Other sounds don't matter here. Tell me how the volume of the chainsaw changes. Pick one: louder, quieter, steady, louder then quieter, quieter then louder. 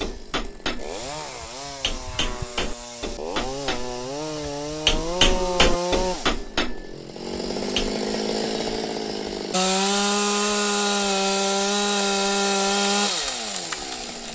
louder.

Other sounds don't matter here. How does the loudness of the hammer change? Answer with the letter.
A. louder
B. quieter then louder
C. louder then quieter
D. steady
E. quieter
C.